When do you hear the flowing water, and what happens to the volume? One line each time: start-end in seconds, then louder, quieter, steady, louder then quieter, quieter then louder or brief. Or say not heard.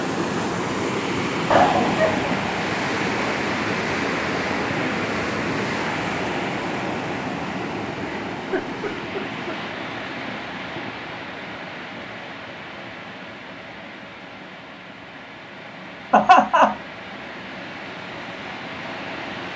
0.0-19.5 quieter.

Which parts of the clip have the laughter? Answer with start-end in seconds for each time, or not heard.
1.5-2.4, 7.9-9.6, 16.1-16.8.